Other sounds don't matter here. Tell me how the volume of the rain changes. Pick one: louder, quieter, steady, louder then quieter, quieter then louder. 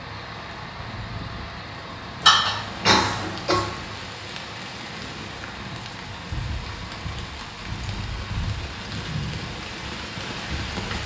louder.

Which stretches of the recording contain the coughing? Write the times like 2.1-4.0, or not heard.
2.2-3.7.